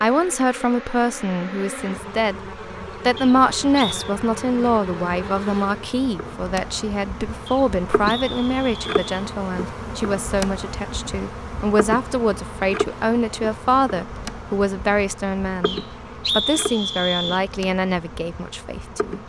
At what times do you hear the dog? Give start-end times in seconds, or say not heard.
not heard.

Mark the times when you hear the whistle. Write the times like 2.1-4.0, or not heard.
3.1-4.0, 7.5-9.2, 15.7-17.4.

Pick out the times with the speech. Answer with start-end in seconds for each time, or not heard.
0.0-2.4, 3.0-19.2.